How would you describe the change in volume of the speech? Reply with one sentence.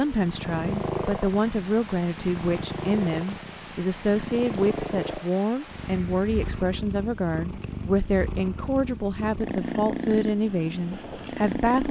The volume of the speech stays about the same.